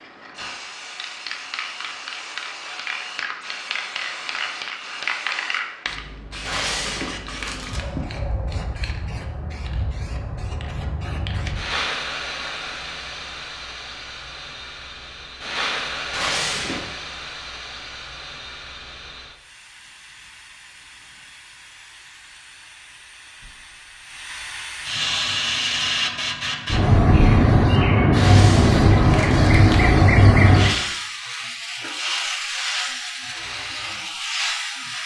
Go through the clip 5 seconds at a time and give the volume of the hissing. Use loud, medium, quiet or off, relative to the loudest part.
quiet, quiet, quiet, quiet, quiet, loud, medium.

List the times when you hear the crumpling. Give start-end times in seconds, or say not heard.
6.5-7.8, 16.1-17.0, 28.1-29.9.